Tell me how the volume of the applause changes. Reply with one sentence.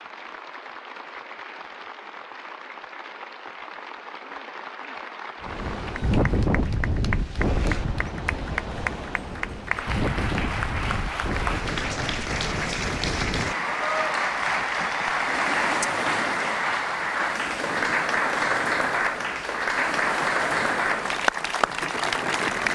The volume of the applause goes up.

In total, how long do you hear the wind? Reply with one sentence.
The wind can be heard for 17 seconds in total.